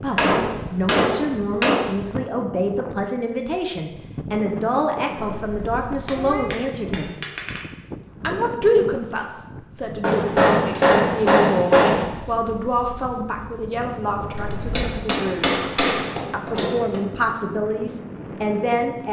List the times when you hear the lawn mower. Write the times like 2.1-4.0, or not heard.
not heard.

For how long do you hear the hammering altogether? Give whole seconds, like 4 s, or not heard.
8 s.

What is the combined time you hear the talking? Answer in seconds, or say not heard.
17 s.